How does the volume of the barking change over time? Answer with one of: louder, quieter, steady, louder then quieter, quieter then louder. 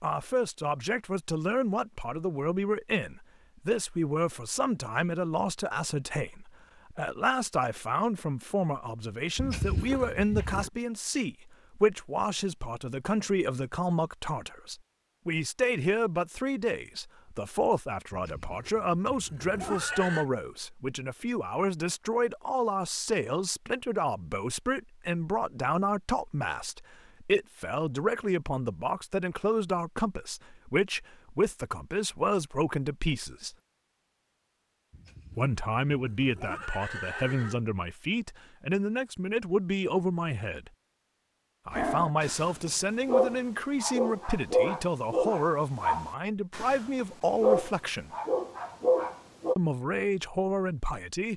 steady.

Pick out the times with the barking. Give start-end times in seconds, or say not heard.
41.7-49.5.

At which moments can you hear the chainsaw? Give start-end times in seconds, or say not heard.
not heard.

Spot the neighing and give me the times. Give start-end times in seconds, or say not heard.
9.3-10.7, 18.1-20.2, 34.9-37.6.